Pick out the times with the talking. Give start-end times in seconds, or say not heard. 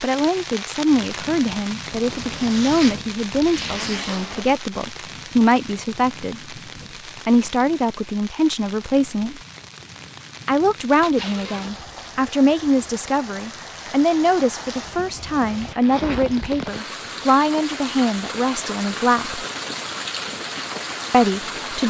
0.0-6.5, 7.2-9.4, 10.4-19.4, 21.1-21.8.